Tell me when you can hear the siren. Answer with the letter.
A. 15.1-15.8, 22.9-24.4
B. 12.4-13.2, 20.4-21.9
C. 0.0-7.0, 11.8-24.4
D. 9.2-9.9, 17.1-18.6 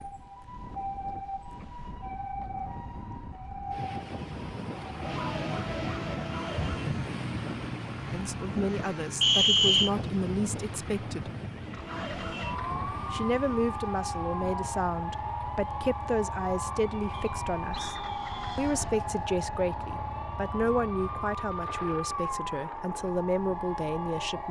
C.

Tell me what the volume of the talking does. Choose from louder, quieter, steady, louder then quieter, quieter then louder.
steady.